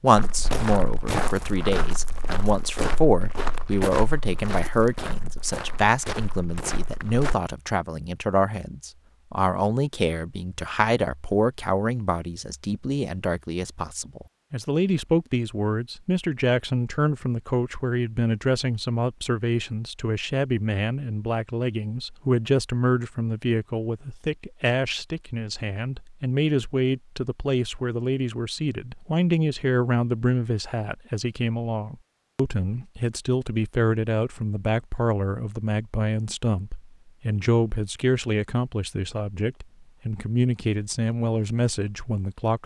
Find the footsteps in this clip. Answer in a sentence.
You can hear the footsteps from 0.1 to 7.3 s.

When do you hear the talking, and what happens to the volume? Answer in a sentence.
The talking can be heard from 0.0 to 42.6 s, at a steady volume.